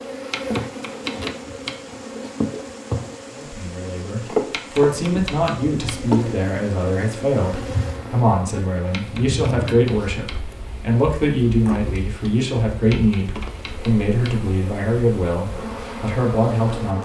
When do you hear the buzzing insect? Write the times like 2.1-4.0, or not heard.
0.0-17.0.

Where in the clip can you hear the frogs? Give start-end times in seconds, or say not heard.
not heard.